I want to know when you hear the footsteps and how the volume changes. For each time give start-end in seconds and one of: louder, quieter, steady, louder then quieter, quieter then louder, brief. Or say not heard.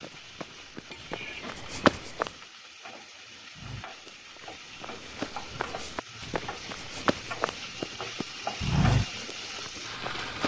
0.0-2.3 brief
3.5-10.4 louder.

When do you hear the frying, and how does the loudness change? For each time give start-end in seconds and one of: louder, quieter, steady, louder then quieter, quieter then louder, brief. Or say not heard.
0.0-10.4 louder.